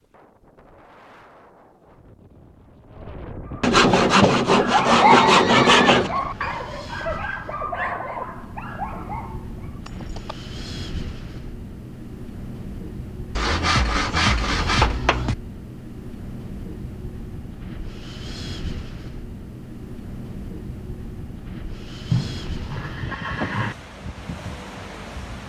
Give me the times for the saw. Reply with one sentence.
You can hear the saw from 3.6 to 6.1 s and from 13.3 to 15.3 s.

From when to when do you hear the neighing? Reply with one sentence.
You can hear the neighing from 4.8 to 6.7 s, from 9.8 to 10.3 s and from 22.1 to 23.8 s.